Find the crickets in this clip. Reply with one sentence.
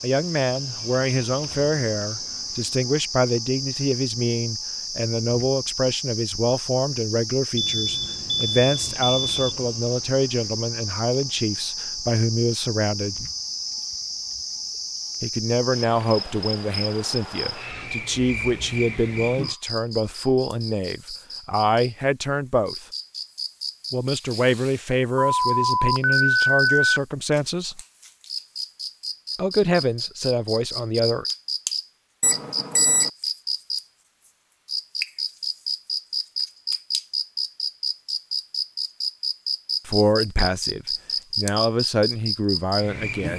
The crickets can be heard from 0.0 to 43.3 s.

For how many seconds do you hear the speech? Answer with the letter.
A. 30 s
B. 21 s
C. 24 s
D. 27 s
A.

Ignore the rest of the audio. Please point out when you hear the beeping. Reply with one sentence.
You can hear the beeping from 7.5 to 9.6 s, from 25.1 to 27.0 s and from 32.2 to 33.1 s.